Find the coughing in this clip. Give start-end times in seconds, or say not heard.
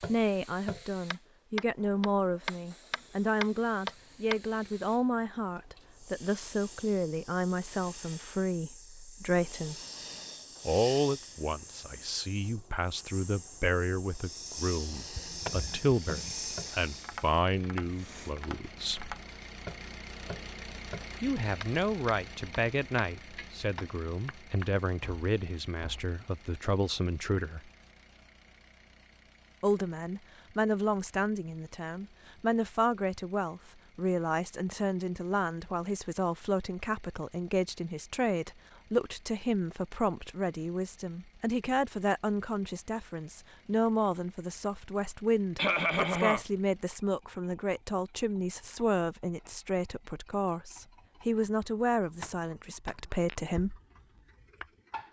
15.2-16.4, 45.5-46.5.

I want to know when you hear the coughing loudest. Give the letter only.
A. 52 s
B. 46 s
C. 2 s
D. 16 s
B.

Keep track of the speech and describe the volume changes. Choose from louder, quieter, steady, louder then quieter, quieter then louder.
steady.